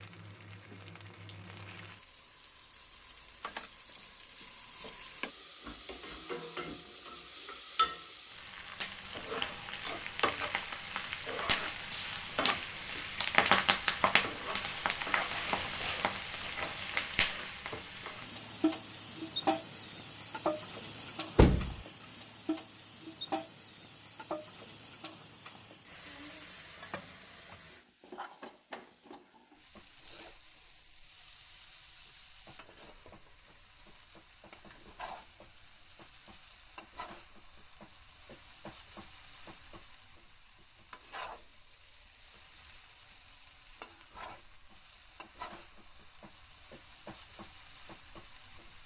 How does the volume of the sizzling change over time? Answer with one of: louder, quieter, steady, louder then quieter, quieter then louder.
louder then quieter.